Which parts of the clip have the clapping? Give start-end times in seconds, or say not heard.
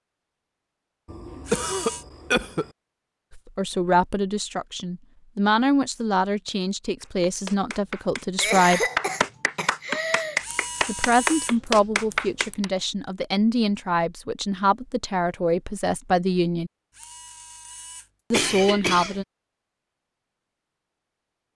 7.0-12.7.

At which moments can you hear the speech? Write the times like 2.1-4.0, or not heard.
3.4-8.8, 10.8-16.7, 18.3-19.2.